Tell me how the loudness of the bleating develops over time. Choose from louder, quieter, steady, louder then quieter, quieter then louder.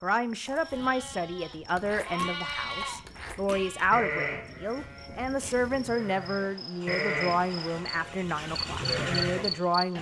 quieter then louder.